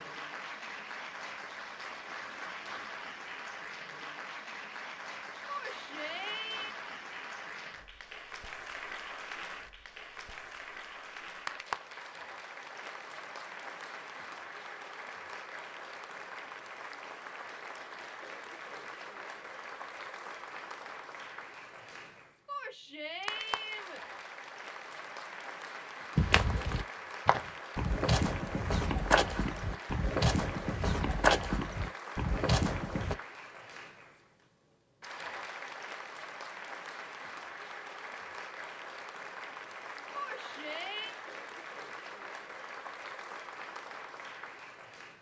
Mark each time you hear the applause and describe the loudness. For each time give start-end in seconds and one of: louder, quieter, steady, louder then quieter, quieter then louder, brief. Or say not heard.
0.0-45.1 steady.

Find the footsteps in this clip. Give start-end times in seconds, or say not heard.
26.1-33.1.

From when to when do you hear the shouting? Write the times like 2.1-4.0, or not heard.
5.5-6.8, 22.4-24.0, 40.1-41.1.